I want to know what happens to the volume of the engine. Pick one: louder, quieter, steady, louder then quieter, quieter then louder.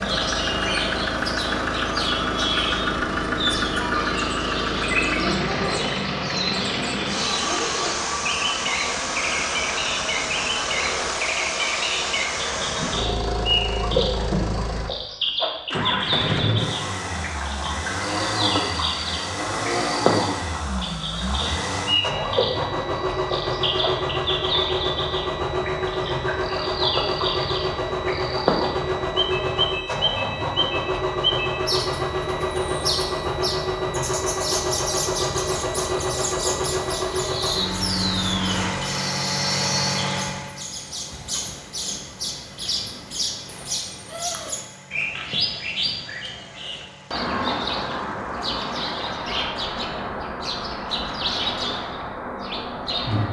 quieter.